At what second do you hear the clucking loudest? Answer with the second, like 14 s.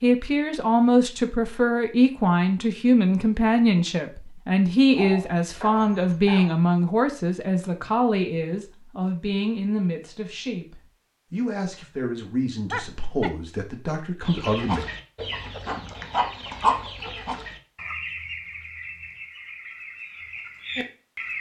17 s.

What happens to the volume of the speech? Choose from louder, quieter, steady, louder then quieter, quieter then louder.
quieter.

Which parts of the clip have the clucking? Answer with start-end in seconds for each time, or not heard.
14.2-21.3.